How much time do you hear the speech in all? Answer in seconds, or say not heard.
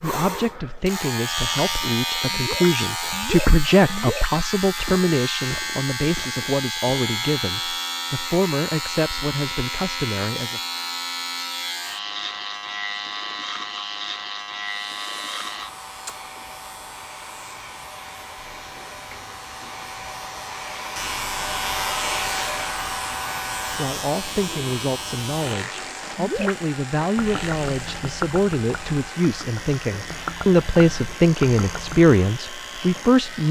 20 s.